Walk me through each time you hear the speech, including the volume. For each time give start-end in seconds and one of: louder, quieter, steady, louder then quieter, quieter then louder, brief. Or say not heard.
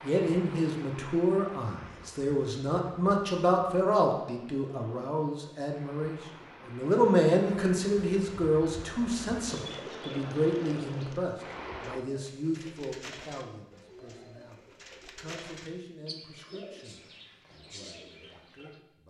0.0-19.0 quieter.